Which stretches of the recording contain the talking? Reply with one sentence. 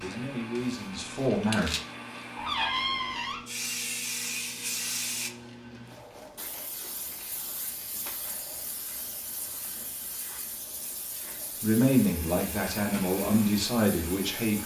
The talking can be heard from 0.0 to 1.8 s and from 11.6 to 14.6 s.